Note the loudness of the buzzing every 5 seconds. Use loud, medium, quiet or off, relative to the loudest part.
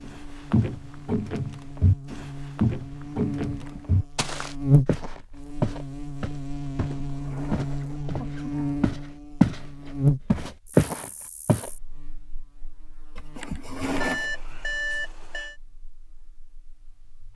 loud, loud, loud, quiet.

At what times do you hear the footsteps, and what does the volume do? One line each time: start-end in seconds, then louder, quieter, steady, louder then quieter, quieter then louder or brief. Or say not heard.
0.1-9.6 quieter then louder
10.3-11.7 brief.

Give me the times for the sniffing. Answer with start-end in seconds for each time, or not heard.
3.5-4.0, 6.8-8.8, 13.2-14.3.